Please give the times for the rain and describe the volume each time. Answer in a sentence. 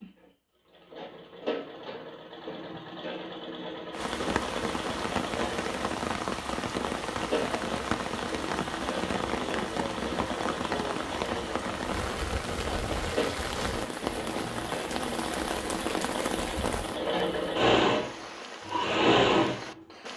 The rain can be heard from 3.9 to 20.1 s, getting quieter.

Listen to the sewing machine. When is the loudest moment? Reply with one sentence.
The volume of the sewing machine peaks at 19 seconds.